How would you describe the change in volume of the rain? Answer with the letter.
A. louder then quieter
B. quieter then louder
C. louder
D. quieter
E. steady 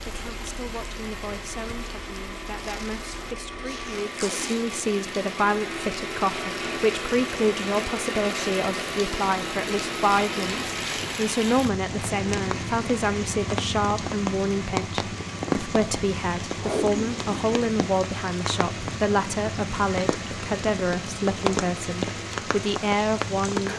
C.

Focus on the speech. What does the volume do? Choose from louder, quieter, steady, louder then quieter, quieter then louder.
louder.